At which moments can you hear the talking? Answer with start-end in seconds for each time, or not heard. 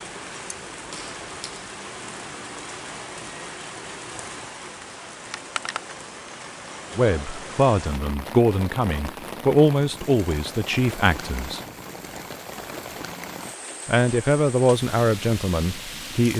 7.0-11.6, 13.8-16.3.